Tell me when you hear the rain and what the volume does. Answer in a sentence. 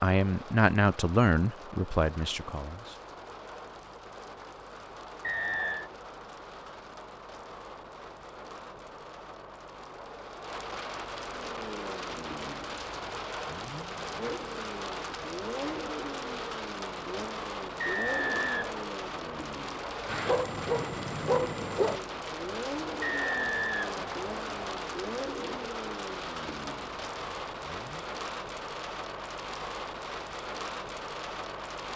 The rain can be heard from 0.0 to 31.9 s, getting louder.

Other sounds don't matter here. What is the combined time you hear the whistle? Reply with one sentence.
You can hear the whistle for 4 seconds altogether.